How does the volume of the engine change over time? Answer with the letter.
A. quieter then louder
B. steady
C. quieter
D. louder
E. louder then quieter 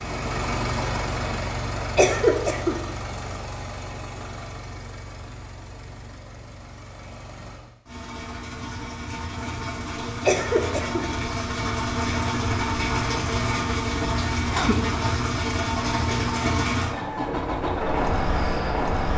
A.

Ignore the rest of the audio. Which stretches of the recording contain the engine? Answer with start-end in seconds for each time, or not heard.
0.0-19.1.